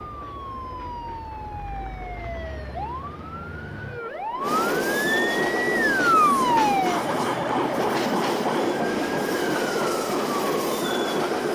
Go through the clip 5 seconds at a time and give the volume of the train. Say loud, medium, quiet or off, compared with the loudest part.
medium, loud, loud.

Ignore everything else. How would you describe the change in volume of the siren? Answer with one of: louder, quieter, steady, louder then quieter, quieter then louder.
louder then quieter.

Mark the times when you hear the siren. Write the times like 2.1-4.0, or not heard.
0.0-11.5.